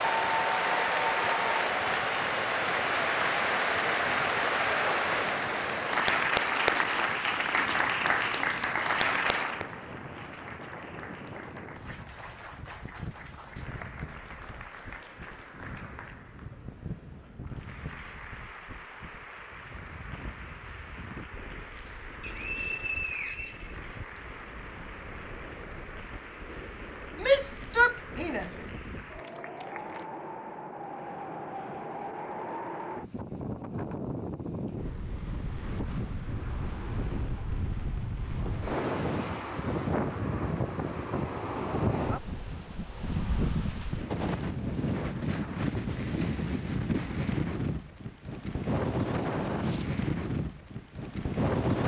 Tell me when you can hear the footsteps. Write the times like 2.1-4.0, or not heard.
not heard.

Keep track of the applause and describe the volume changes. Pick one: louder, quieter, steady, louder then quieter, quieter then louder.
quieter.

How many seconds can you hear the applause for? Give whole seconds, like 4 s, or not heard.
30 s.